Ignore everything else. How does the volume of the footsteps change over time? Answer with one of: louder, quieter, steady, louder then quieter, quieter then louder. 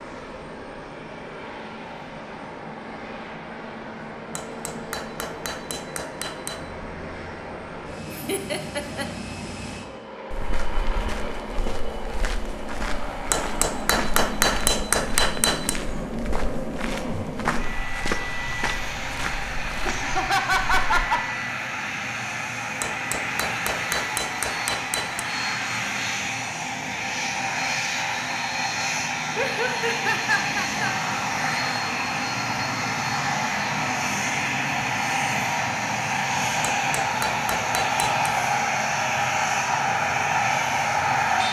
louder.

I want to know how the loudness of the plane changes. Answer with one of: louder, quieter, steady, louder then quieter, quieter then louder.
louder.